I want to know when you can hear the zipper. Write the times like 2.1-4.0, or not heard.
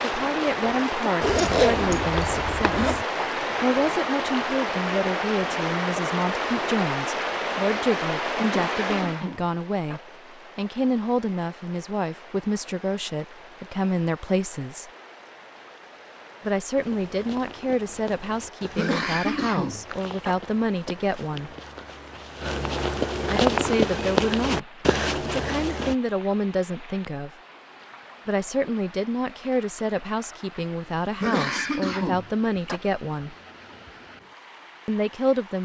1.2-3.0.